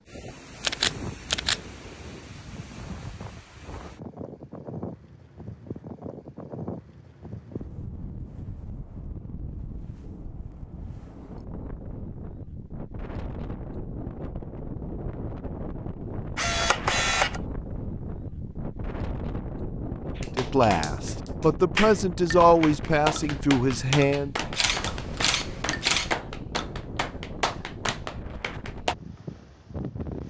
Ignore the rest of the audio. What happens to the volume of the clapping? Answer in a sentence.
The volume of the clapping stays about the same.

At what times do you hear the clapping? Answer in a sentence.
You can hear the clapping from 20.1 to 28.9 s.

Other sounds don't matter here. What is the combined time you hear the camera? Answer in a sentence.
The camera can be heard for 4 seconds in total.